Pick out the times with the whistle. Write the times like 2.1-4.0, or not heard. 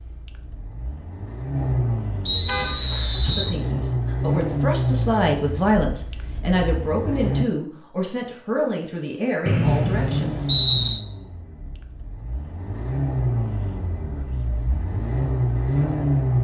2.2-3.5, 9.4-11.0.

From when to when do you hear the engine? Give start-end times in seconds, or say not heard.
0.0-7.5, 9.6-16.3.